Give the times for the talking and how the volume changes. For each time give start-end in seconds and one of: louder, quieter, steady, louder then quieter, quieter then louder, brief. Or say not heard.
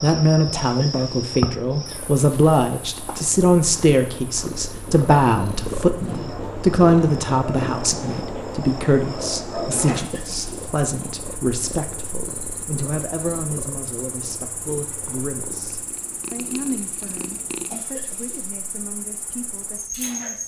0.0-20.4 quieter.